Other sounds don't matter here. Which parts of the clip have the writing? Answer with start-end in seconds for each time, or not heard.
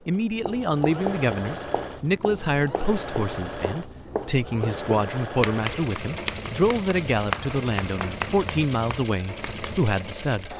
0.3-9.8.